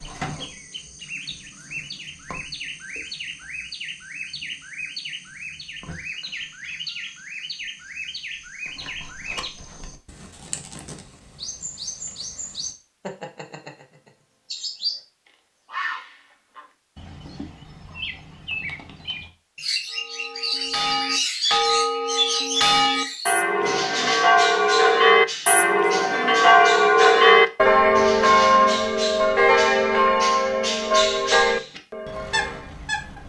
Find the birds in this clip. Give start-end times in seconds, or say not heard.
0.0-33.2.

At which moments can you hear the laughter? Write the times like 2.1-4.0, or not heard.
not heard.